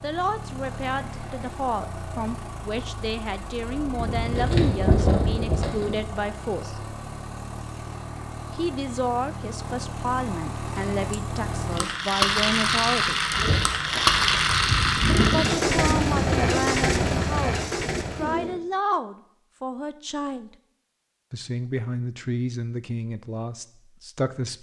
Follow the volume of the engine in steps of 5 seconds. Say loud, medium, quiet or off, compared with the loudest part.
quiet, quiet, loud, loud, off.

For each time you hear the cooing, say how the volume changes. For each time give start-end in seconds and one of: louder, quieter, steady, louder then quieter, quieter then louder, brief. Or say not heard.
3.7-6.0 brief
13.3-18.6 louder then quieter.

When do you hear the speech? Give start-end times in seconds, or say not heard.
0.0-6.8, 8.5-13.2, 15.3-20.6, 21.3-24.5.